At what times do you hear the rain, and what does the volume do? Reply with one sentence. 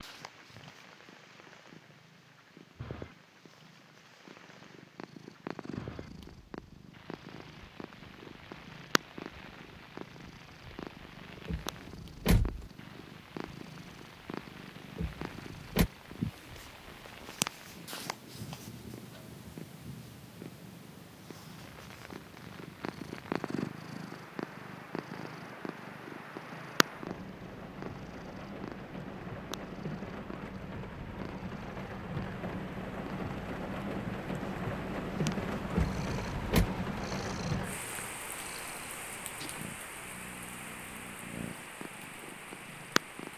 The rain can be heard from 0.0 to 43.3 s, getting louder.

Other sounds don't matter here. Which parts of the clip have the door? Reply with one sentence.
The door can be heard from 11.4 to 12.7 s, from 14.9 to 15.9 s and from 35.7 to 36.7 s.